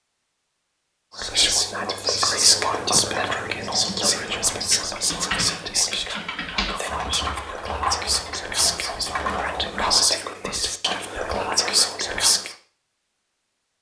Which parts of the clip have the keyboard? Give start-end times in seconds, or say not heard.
1.9-10.2.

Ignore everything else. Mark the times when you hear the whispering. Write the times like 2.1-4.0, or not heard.
1.1-12.6.